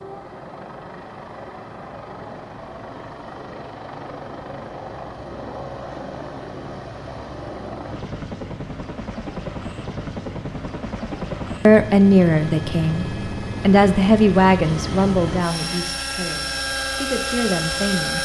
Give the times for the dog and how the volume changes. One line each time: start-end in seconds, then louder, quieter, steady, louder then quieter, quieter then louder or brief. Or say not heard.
not heard.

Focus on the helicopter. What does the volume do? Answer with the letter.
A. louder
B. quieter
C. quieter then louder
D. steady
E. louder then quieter
A.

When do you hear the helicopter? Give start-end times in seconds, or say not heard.
0.0-18.1.